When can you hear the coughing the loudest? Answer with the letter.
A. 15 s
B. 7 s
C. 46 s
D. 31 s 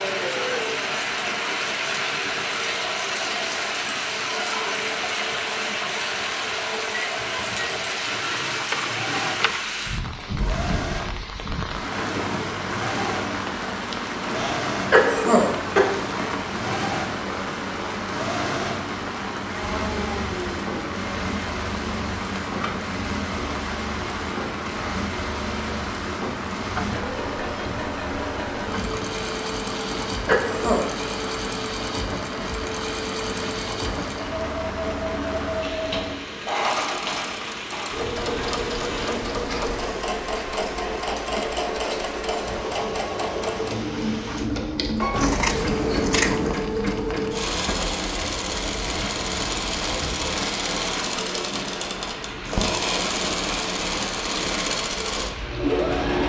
A.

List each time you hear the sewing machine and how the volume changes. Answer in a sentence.
The sewing machine can be heard from 0.2 to 56.2 s, getting louder.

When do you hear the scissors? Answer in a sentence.
The scissors can be heard from 8.5 to 9.6 s and from 45.1 to 46.6 s.